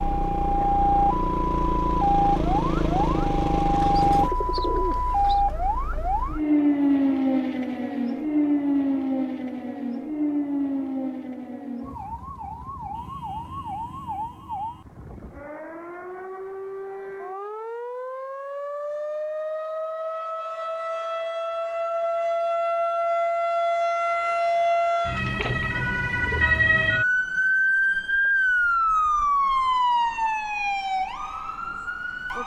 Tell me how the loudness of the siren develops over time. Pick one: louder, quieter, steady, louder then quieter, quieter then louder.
quieter then louder.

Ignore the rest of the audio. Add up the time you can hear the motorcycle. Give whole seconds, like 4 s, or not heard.
4 s.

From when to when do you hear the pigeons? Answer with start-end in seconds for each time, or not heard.
3.8-5.4, 25.4-26.4.